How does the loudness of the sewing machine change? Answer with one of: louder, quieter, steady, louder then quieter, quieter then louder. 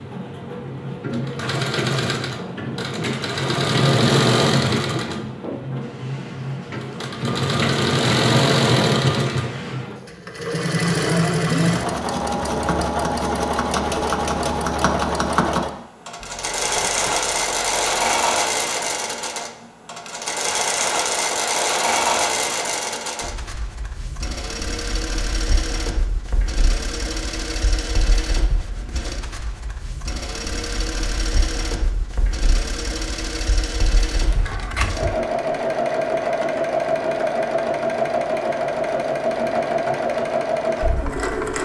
quieter then louder.